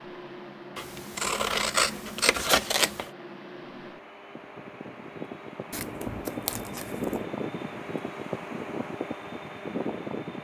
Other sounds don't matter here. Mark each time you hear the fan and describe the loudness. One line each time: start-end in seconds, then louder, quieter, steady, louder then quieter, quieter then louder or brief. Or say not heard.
0.0-10.4 louder.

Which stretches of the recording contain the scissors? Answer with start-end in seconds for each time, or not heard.
0.8-3.1, 5.7-7.2.